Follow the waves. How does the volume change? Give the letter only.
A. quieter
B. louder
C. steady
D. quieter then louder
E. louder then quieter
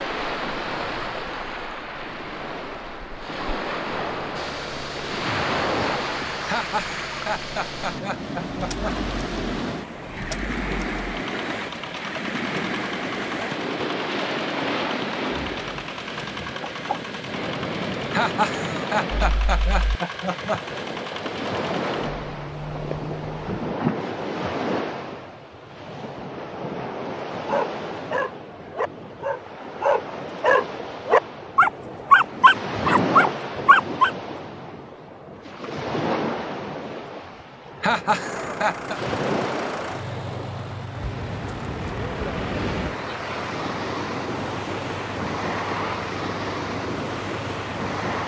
C.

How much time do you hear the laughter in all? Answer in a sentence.
You can hear the laughter for 6 seconds altogether.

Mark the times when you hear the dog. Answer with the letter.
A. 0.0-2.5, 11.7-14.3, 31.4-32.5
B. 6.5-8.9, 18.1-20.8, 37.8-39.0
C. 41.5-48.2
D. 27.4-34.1
D.